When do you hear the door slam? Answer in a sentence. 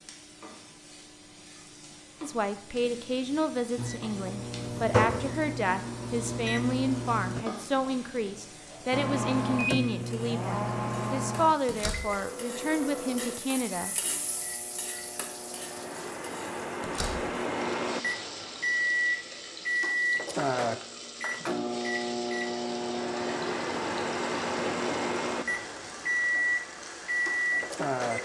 The door slam can be heard from 11.7 to 12.2 s and from 16.8 to 17.4 s.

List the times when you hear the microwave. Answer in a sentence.
You can hear the microwave from 3.8 to 7.5 s and from 8.9 to 28.2 s.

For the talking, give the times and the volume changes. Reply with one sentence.
The talking can be heard from 2.2 to 13.9 s, at a steady volume.